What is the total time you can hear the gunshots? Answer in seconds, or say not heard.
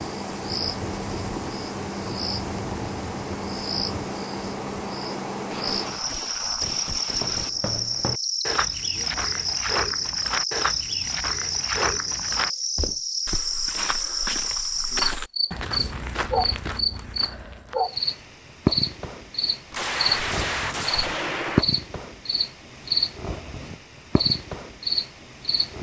4 s.